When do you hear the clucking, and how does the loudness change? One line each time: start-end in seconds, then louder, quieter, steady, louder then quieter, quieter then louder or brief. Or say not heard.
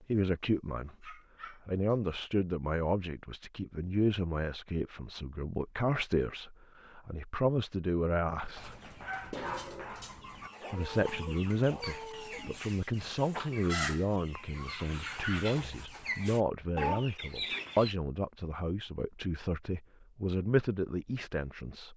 8.6-17.9 louder.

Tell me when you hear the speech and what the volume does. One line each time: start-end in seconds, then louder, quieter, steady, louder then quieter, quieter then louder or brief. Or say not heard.
0.1-8.8 steady
10.7-21.9 steady.